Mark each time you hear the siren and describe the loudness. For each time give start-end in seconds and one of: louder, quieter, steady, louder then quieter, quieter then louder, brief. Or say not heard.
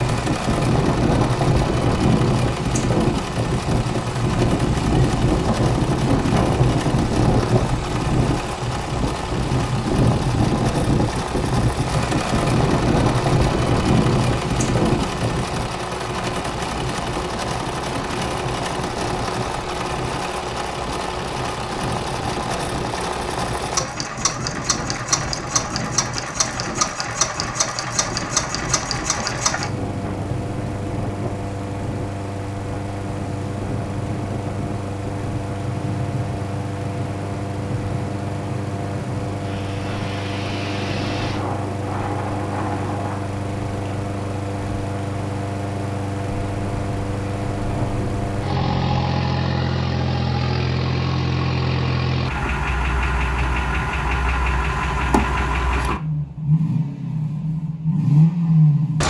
not heard.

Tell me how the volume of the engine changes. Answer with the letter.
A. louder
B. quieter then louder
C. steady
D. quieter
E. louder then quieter
A.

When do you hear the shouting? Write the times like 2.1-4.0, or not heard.
not heard.